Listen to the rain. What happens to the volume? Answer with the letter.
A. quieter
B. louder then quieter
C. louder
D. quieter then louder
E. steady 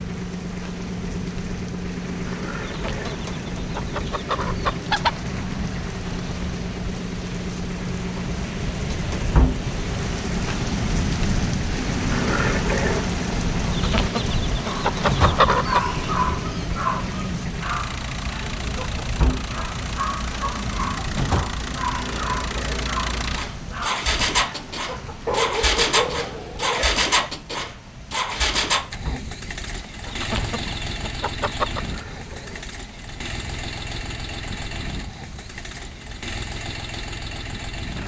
B.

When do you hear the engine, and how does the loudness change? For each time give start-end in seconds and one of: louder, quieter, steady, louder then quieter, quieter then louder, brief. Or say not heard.
0.0-38.0 louder then quieter.